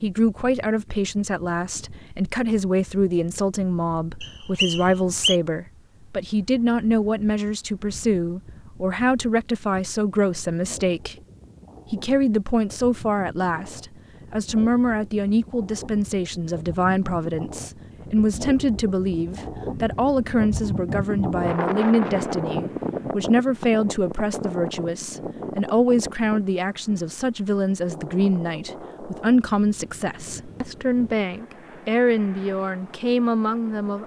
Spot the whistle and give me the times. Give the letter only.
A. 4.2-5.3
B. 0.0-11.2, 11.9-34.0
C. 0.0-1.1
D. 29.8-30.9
A.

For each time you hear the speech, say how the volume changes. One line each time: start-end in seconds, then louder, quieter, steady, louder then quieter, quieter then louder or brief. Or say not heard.
0.0-11.2 steady
11.9-34.0 steady.